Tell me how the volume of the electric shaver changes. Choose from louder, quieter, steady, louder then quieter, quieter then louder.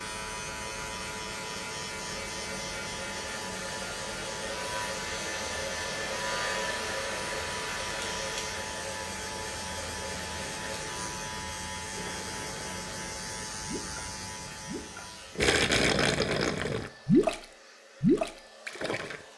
steady.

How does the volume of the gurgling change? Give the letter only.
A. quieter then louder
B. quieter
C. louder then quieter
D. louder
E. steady
D.